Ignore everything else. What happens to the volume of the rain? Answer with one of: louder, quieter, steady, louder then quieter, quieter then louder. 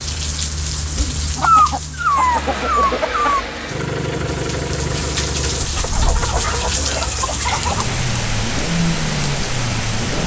quieter then louder.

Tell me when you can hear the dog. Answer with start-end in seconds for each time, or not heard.
1.4-3.4, 6.4-7.8.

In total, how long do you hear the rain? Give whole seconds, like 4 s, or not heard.
10 s.